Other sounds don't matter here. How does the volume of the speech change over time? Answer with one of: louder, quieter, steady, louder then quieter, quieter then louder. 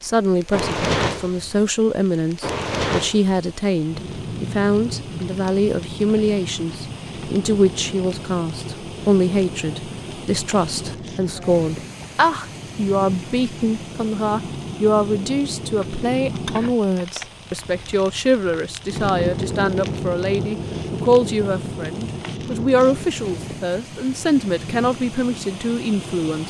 steady.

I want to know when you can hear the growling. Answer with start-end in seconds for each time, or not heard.
not heard.